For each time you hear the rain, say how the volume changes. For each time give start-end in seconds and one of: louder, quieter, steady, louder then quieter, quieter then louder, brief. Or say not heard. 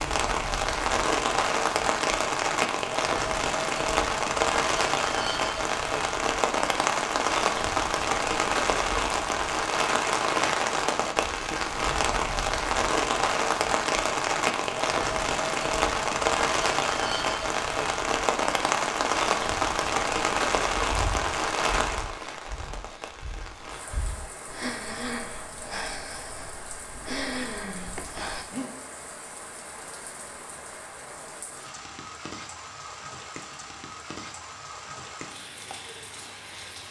0.0-36.8 quieter.